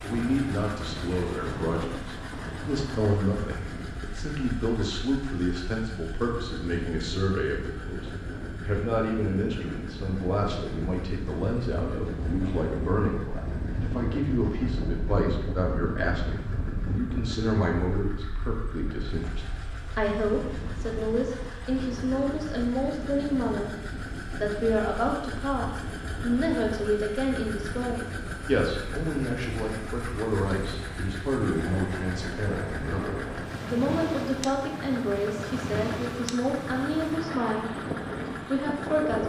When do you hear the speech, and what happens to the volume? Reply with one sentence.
You can hear the speech from 0.0 to 37.9 s, at a steady volume; and briefly from 38.5 to 39.2 s.